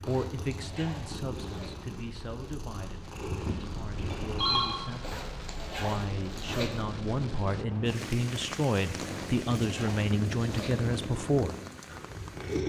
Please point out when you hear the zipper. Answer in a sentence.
You can hear the zipper from 0.1 to 1.7 s, from 5.0 to 6.8 s and from 9.1 to 10.8 s.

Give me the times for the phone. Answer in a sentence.
You can hear the phone from 4.0 to 4.8 s.